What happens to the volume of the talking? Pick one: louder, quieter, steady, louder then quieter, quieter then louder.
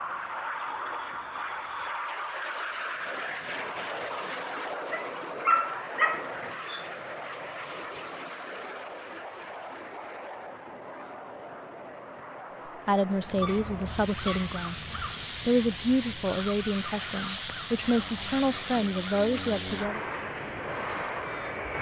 steady.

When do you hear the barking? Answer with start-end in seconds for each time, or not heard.
4.9-6.8, 13.4-14.6.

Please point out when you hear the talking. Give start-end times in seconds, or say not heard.
12.8-20.0.